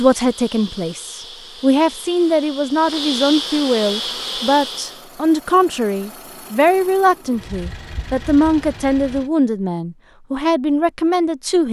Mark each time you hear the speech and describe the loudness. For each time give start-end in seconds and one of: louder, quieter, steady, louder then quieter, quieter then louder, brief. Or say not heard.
0.0-11.6 steady.